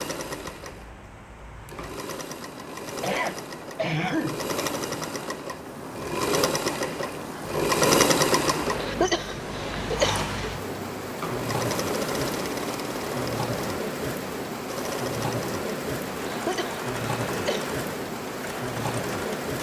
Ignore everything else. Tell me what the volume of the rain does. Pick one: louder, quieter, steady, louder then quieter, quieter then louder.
louder.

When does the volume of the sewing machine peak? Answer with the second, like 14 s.
8 s.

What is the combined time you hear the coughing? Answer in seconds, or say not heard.
4 s.